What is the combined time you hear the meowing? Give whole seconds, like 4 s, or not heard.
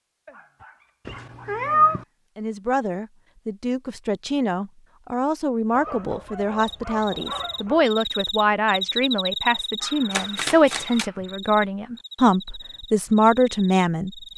2 s.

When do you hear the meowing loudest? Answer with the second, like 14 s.
2 s.